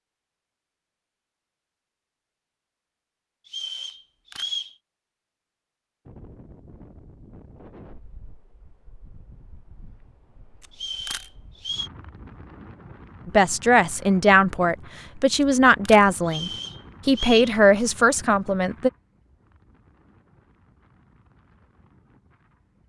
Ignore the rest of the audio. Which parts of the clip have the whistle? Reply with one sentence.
The whistle can be heard from 3.5 to 4.8 s, from 10.7 to 11.9 s and from 16.2 to 17.6 s.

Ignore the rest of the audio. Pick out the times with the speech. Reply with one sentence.
The speech can be heard from 13.2 to 18.9 s.